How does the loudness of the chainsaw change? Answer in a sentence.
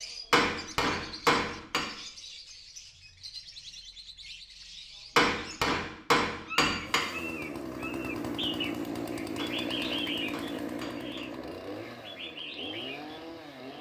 The volume of the chainsaw goes down.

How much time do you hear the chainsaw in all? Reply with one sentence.
You can hear the chainsaw for 7 seconds altogether.